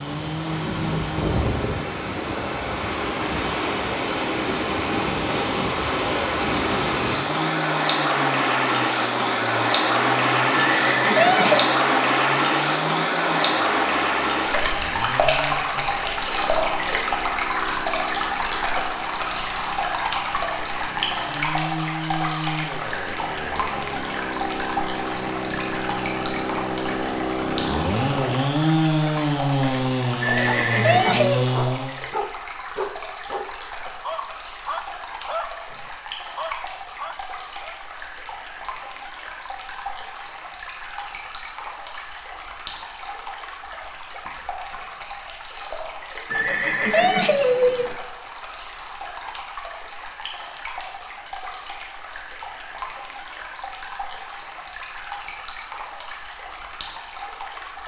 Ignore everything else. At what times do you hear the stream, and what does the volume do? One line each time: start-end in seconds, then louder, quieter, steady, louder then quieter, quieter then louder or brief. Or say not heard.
0.0-57.8 quieter.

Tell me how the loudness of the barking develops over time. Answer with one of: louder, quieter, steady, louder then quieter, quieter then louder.
steady.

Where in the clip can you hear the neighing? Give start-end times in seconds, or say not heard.
10.5-11.7, 30.2-31.5, 46.3-48.0.